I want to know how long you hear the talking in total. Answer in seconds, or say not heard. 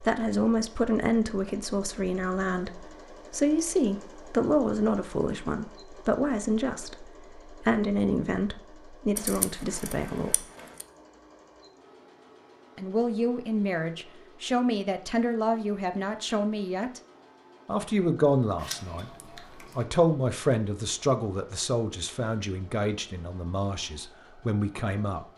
22 s.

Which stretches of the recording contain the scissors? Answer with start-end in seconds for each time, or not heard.
9.2-10.8, 18.6-19.9.